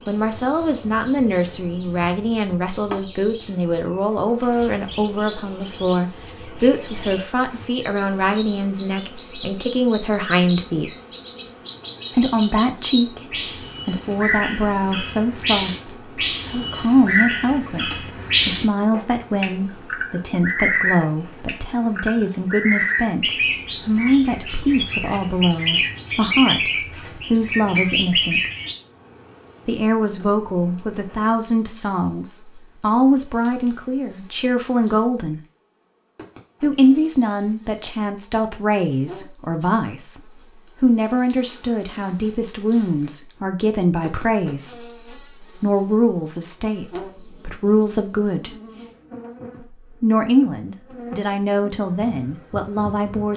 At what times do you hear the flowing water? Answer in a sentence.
You can't hear the flowing water here.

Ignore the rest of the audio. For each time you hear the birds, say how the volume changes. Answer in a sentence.
The birds can be heard from 0.0 to 28.8 s, getting louder.